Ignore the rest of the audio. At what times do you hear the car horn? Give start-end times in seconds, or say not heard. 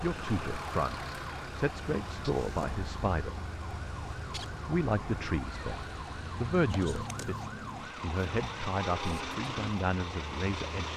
not heard.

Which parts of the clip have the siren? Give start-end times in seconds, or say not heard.
0.0-10.9.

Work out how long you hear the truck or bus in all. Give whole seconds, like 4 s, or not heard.
11 s.